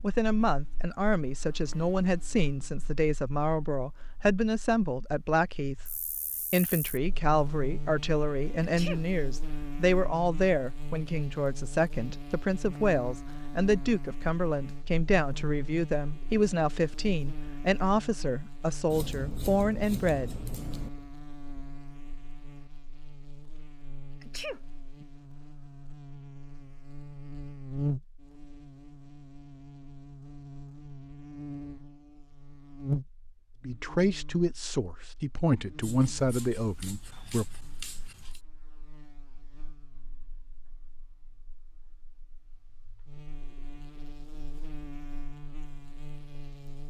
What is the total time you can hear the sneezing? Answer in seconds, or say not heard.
2 s.